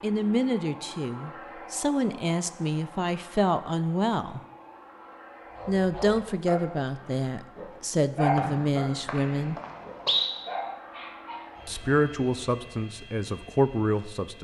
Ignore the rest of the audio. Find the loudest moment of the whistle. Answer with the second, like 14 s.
10 s.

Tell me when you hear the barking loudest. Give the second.
8 s.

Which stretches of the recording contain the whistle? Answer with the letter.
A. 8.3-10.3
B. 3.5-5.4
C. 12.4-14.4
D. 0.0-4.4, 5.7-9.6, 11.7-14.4
A.